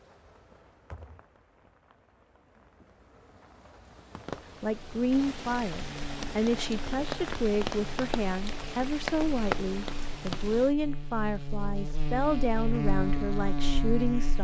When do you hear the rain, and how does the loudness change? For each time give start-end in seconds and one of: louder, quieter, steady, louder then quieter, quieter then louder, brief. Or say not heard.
0.0-10.8 louder.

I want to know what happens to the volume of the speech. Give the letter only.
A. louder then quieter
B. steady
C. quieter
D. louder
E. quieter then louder
B.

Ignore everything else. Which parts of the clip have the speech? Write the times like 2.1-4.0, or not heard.
4.6-14.3.